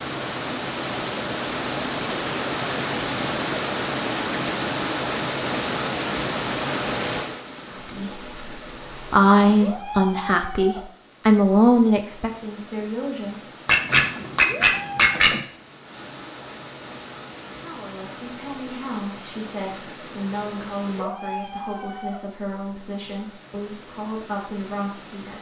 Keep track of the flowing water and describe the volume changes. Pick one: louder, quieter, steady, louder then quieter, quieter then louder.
quieter.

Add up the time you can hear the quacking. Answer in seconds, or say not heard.
2 s.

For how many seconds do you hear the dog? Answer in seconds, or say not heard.
not heard.